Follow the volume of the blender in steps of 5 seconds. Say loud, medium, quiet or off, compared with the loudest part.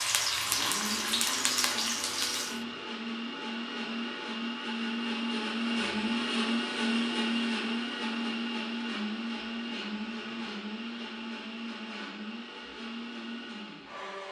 medium, loud, medium.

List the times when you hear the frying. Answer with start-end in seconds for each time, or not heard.
0.0-2.6.